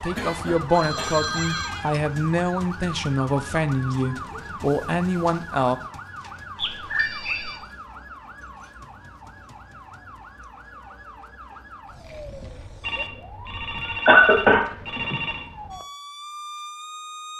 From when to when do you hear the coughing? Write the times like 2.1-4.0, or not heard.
0.1-1.2, 14.1-14.7.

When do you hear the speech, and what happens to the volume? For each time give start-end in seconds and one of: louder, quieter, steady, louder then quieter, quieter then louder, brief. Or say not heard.
0.0-5.8 steady.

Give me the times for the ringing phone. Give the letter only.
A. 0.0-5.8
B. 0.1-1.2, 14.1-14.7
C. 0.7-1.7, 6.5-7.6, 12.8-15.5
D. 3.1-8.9
C.